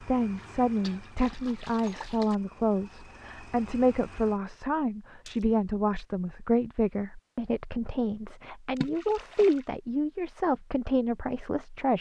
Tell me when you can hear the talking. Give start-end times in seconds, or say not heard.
0.0-11.9.